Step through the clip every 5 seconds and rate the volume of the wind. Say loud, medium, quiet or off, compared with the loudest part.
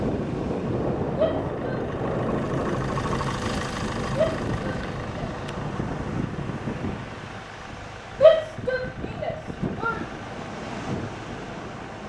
loud, medium, medium.